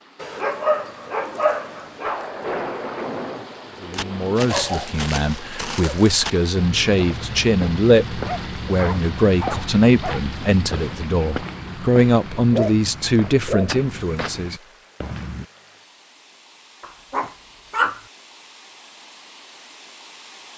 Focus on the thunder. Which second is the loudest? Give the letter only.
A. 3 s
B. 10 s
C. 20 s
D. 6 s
A.